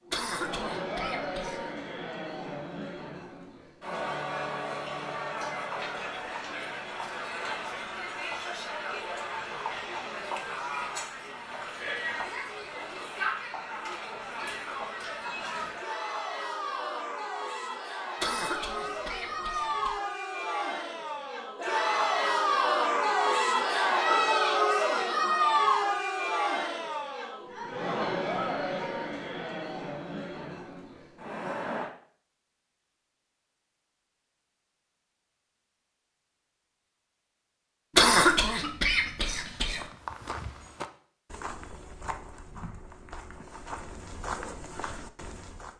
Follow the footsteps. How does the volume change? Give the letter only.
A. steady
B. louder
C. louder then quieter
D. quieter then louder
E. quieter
D.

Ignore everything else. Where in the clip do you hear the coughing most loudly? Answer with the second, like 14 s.
38 s.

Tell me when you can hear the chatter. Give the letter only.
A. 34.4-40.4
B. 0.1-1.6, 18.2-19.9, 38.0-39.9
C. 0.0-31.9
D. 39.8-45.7
C.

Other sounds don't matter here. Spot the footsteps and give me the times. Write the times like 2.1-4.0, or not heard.
39.8-45.7.